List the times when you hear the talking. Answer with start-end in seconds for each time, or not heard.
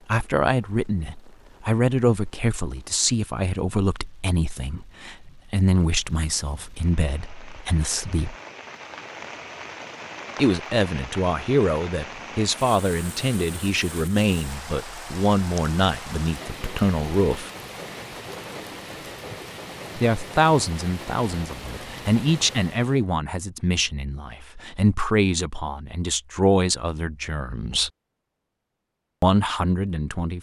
0.1-8.3, 10.3-17.5, 19.9-27.9, 29.2-30.3.